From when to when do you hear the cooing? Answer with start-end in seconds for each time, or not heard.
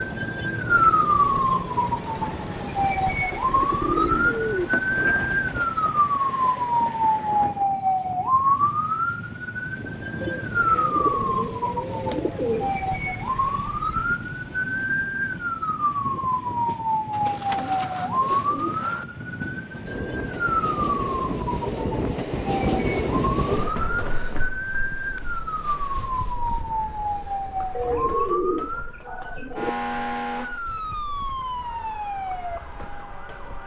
3.4-5.7, 10.2-12.7, 17.1-19.1, 27.8-29.7.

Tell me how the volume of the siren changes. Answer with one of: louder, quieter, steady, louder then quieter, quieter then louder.
quieter.